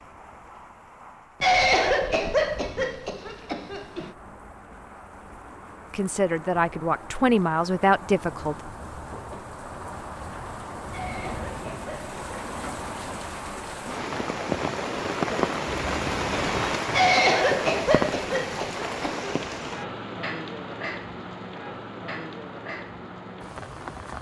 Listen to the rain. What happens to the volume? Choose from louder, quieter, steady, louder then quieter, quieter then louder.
louder then quieter.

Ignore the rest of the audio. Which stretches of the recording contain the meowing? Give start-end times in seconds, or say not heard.
15.7-16.8.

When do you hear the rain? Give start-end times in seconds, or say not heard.
0.0-24.1.